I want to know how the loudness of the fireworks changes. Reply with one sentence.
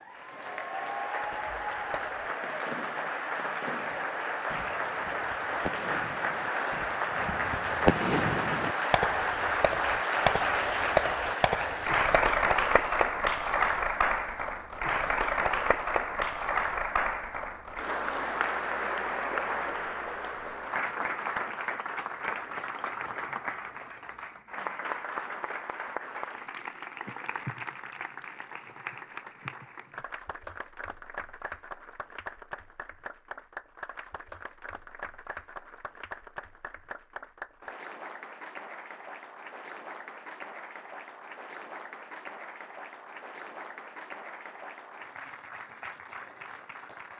The volume of the fireworks goes up.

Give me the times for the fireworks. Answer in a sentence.
You can hear the fireworks from 1.2 to 13.2 s.